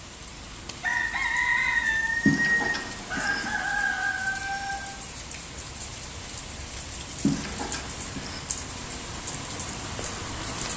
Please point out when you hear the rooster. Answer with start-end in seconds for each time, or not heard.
0.8-4.8.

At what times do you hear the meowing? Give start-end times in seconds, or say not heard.
2.2-3.5, 7.2-8.4.